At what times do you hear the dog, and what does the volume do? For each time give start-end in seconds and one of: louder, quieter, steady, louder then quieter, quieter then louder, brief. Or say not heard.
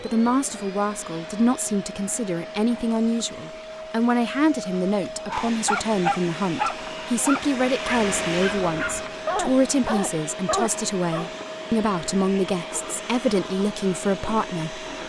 5.2-11.3 quieter then louder.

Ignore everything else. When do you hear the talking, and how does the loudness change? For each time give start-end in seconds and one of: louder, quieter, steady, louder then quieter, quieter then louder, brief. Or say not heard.
0.0-14.8 steady.